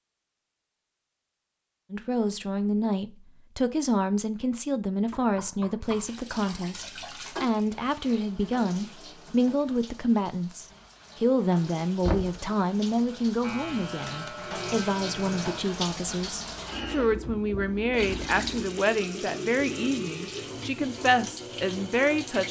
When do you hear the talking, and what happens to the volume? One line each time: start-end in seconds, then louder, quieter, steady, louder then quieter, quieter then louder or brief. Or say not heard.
1.9-22.4 steady.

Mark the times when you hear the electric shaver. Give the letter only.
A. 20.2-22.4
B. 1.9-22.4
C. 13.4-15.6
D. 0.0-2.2
C.